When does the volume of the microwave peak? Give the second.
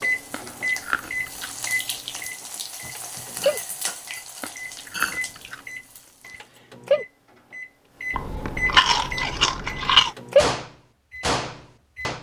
11 s.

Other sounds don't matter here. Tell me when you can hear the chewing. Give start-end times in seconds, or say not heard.
0.3-1.5, 4.4-5.6, 8.1-10.2.